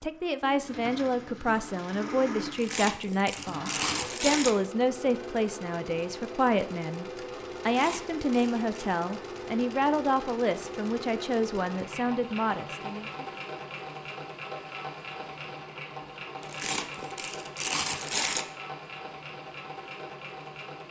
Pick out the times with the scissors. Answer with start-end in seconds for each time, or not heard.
not heard.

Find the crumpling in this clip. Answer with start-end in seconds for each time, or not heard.
2.5-4.5, 7.6-8.9, 16.4-18.4.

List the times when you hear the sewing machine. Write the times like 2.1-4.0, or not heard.
0.0-20.8.